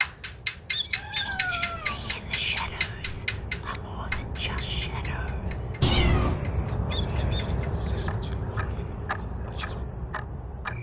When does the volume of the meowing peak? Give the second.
6 s.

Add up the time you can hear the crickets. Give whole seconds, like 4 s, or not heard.
11 s.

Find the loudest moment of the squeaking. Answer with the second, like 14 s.
1 s.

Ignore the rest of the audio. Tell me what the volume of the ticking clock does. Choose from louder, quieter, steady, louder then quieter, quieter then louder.
quieter then louder.